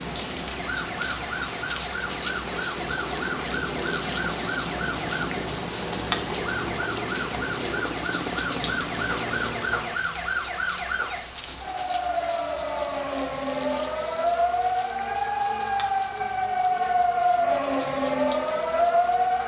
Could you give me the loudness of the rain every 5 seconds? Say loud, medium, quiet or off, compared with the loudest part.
loud, loud, medium, medium.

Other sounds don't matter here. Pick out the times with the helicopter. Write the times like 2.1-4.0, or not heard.
0.0-10.1.